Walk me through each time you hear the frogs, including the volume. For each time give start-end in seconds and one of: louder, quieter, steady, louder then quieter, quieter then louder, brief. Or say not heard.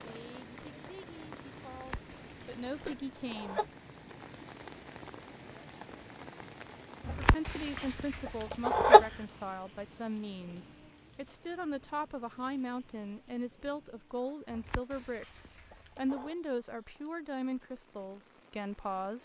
not heard.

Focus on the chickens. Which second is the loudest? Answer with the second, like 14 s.
9 s.